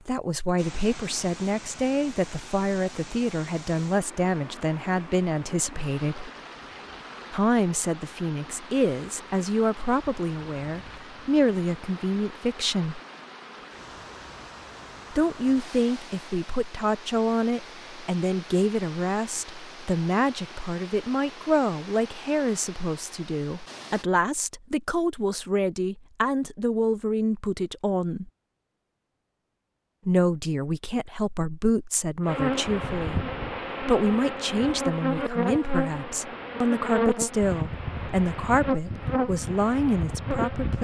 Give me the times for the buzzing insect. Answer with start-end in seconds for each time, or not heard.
32.2-40.7.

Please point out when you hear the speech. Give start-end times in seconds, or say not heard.
0.1-6.3, 7.3-13.0, 15.1-28.3, 30.1-40.7.